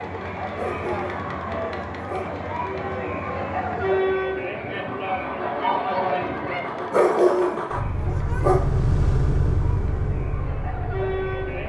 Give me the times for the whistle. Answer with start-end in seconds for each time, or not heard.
not heard.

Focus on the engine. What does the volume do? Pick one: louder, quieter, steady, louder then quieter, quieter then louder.
louder.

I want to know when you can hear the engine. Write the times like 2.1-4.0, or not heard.
0.0-11.6.